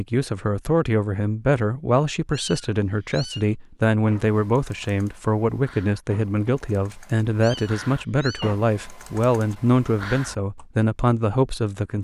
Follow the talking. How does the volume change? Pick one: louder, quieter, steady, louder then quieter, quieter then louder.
steady.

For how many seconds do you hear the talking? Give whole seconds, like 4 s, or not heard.
12 s.